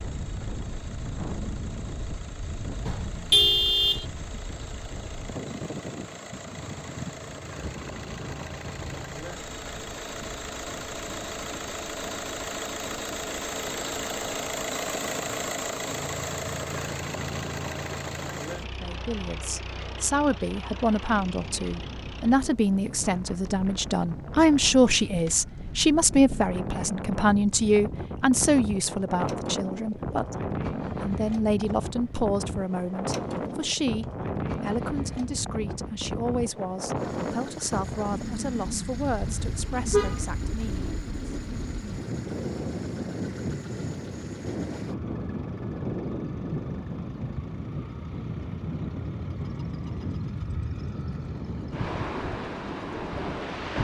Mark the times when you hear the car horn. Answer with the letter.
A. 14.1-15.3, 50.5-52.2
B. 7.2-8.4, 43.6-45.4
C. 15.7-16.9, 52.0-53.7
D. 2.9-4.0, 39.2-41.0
D.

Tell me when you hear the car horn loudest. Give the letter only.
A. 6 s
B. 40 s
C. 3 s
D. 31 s
C.